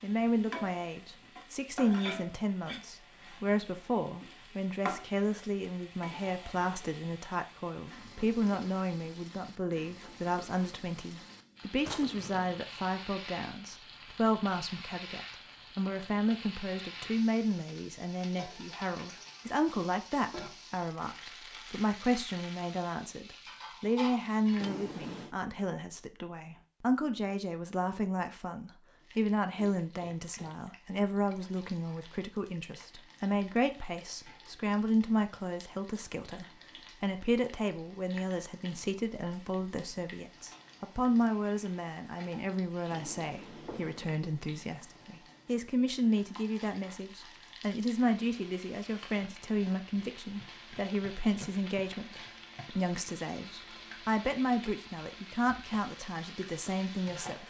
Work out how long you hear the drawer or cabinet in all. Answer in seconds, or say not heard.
3 s.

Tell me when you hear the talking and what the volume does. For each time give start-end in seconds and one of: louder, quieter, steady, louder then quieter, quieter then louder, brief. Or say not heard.
0.0-57.4 steady.